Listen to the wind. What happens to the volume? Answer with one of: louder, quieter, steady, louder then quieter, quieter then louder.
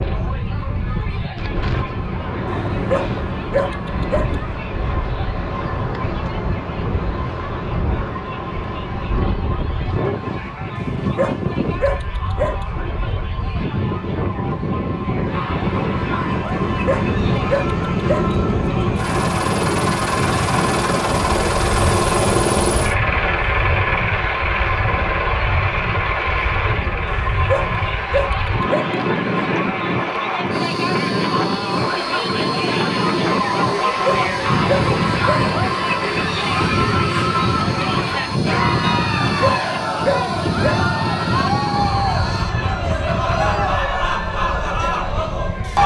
steady.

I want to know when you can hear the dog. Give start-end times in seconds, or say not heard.
2.9-4.3, 11.2-12.6, 16.9-18.3, 27.4-28.9, 34.0-35.5, 39.4-40.9.